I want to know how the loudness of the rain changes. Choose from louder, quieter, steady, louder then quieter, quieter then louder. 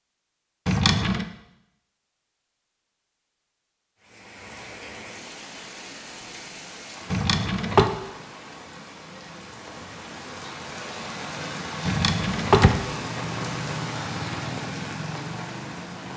louder.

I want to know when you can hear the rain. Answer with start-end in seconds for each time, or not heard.
4.0-16.1.